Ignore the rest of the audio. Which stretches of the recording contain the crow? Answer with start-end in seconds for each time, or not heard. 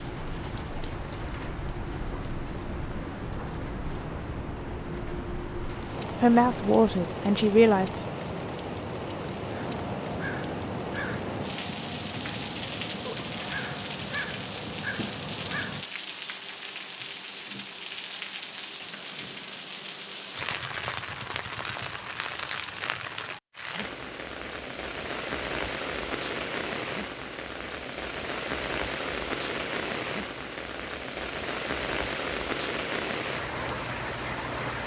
9.5-15.8.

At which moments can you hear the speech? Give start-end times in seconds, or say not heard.
5.7-8.0.